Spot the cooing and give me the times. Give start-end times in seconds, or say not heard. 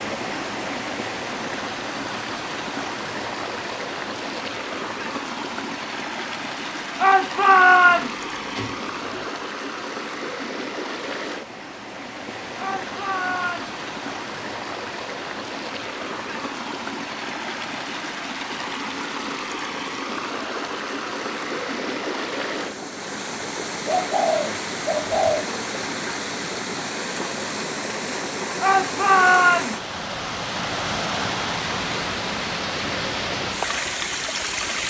7.8-9.3, 23.9-25.5.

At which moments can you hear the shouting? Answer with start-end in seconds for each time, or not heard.
7.0-8.1, 12.6-13.7, 28.6-29.8.